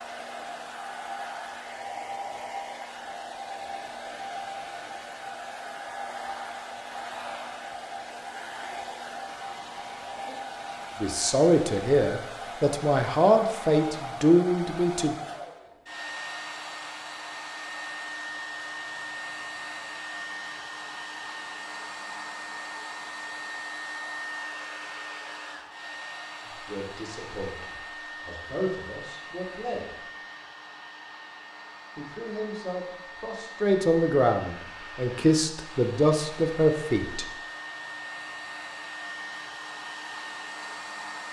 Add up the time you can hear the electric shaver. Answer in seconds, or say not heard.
not heard.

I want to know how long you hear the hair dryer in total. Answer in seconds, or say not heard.
41 s.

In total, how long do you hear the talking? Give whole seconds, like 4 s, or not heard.
13 s.